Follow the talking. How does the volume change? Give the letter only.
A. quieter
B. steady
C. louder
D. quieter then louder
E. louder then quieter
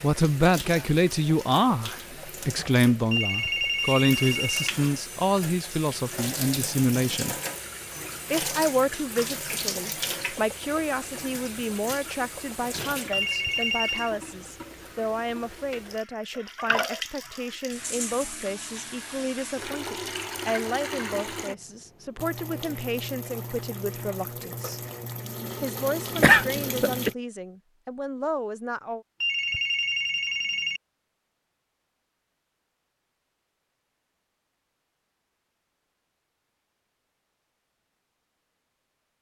A.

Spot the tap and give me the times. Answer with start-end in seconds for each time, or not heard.
0.0-27.1.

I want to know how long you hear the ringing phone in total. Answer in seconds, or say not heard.
4 s.